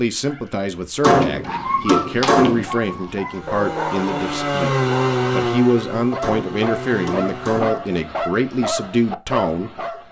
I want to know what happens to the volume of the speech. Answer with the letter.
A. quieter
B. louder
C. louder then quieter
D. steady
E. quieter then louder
D.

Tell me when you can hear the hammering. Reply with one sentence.
You can hear the hammering from 1.0 to 2.6 s and from 6.2 to 8.1 s.